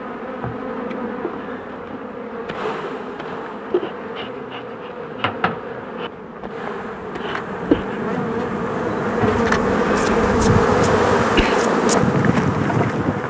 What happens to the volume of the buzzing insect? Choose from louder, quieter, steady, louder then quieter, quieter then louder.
louder.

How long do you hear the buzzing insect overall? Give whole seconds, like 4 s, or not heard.
13 s.